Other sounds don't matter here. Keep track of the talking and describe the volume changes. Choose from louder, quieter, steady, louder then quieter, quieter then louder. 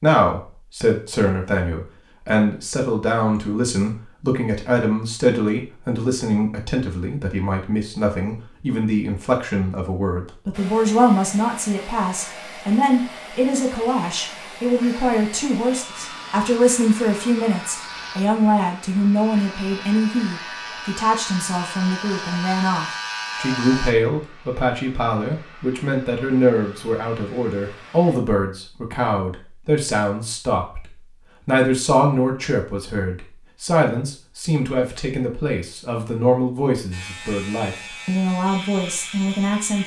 steady.